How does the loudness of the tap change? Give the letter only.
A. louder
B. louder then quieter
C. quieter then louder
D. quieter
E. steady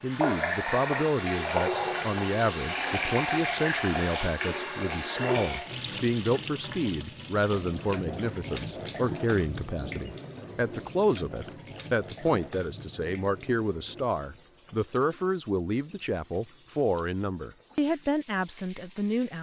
D.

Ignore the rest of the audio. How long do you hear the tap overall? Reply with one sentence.
You can hear the tap for 19 seconds altogether.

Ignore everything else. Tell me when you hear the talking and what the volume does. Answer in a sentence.
The talking can be heard from 0.0 to 19.3 s, at a steady volume.